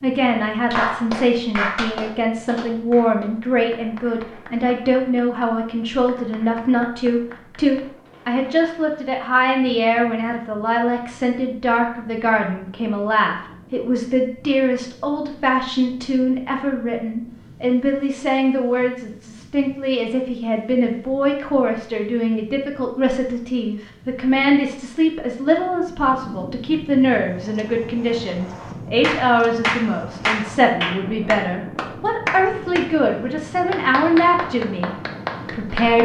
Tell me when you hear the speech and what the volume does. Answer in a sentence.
You can hear the speech from 0.0 to 36.0 s, at a steady volume.